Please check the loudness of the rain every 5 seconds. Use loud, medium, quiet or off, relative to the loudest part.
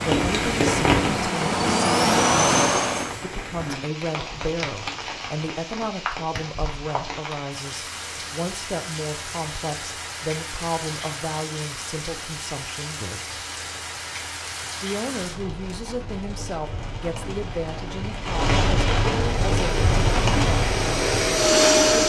loud, medium, medium, loud, loud.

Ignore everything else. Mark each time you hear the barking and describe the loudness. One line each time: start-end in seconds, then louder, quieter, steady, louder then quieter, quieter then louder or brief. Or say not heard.
not heard.